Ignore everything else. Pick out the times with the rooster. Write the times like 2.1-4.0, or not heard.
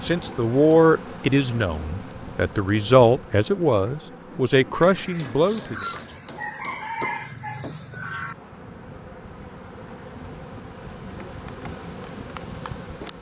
4.8-8.3.